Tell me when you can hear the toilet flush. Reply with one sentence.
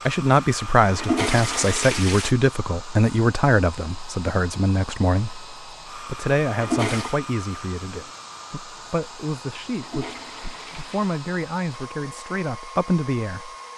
You can hear the toilet flush from 0.8 to 2.4 s, from 6.5 to 7.2 s and from 9.7 to 11.2 s.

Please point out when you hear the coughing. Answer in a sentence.
You can't hear the coughing here.